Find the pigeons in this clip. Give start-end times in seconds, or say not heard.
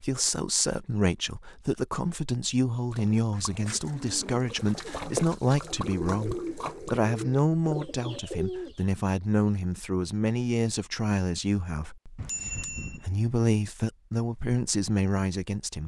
3.3-8.8.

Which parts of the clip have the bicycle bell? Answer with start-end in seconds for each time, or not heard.
12.2-13.1.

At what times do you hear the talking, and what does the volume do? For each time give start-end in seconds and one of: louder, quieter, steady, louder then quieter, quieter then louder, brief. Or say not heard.
0.0-15.8 steady.